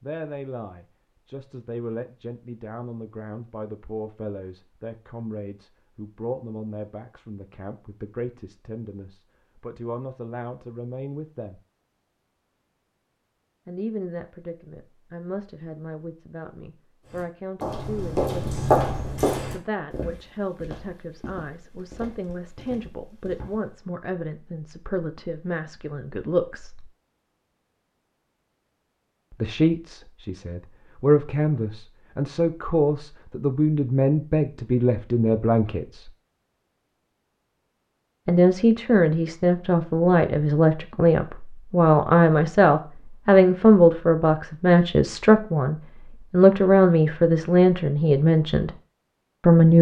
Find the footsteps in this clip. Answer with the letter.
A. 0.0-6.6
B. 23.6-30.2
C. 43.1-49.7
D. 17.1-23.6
D.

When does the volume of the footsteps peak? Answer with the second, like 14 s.
19 s.